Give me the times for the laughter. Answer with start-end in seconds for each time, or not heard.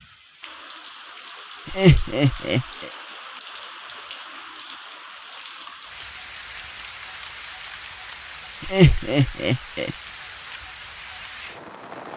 1.6-2.6, 8.6-9.9.